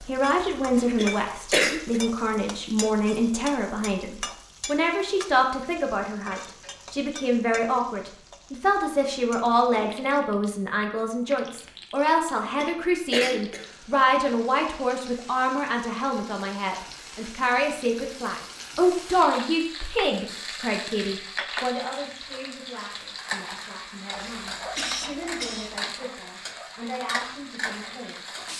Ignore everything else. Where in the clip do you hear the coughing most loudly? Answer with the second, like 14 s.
2 s.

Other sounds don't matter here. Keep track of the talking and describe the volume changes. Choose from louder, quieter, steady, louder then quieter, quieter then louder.
quieter.